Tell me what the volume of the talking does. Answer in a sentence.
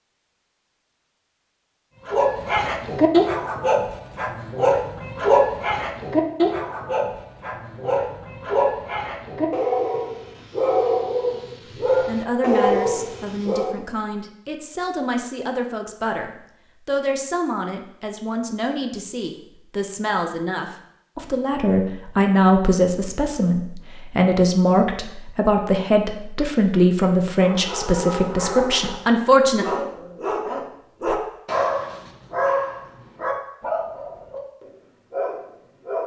The loudness of the talking goes up.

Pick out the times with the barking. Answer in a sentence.
The barking can be heard from 2.0 to 13.8 s and from 27.4 to 36.0 s.